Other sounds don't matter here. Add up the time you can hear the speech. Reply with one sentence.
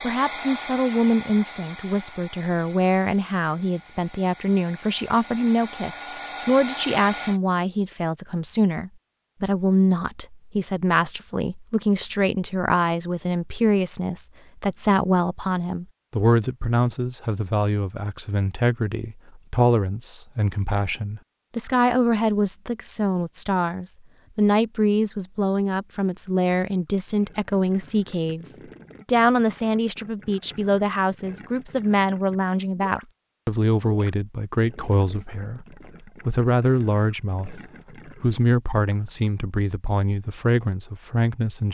The speech can be heard for 41 seconds in total.